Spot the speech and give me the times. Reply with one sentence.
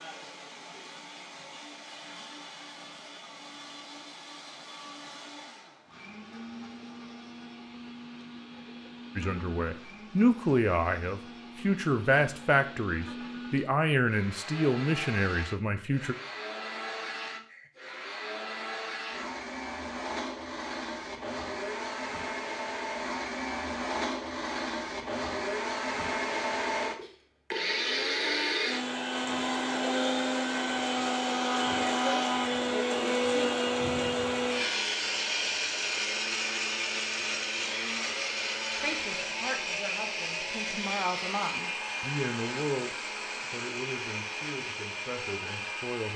You can hear the speech from 9.2 to 16.1 s and from 38.7 to 46.1 s.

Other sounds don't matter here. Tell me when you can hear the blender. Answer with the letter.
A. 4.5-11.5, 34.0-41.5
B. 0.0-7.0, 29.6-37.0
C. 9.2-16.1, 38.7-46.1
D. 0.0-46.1
D.